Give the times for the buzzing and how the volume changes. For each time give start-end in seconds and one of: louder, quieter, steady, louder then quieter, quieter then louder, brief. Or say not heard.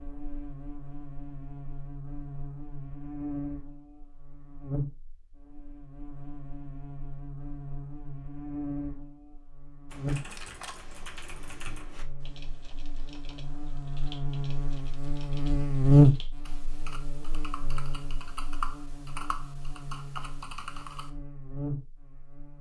0.0-22.5 louder then quieter.